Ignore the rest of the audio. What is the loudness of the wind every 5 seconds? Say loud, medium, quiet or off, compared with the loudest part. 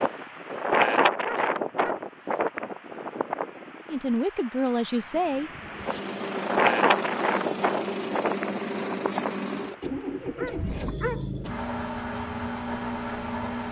loud, loud, off.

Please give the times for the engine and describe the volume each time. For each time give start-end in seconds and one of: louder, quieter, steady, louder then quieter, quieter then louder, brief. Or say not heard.
5.6-13.6 steady.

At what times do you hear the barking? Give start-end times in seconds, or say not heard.
1.2-2.5, 10.3-11.3.